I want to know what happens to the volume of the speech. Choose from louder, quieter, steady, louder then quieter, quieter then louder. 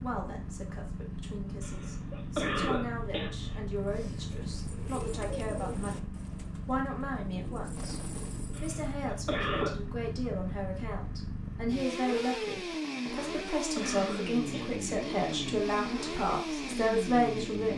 louder.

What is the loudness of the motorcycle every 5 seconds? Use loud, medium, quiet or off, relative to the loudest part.
medium, medium, loud, loud.